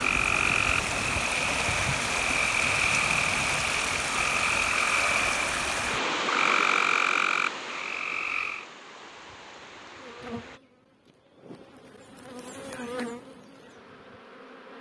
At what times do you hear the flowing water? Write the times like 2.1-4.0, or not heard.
0.0-10.6.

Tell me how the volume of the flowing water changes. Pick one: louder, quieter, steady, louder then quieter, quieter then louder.
quieter.